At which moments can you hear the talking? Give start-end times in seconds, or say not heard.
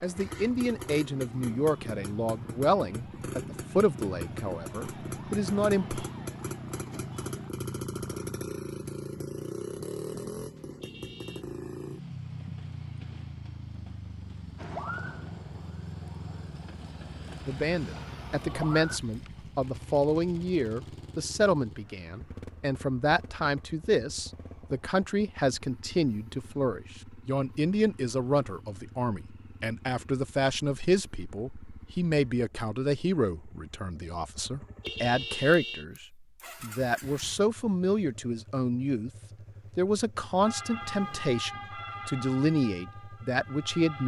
0.0-6.0, 17.4-39.1, 39.8-44.0.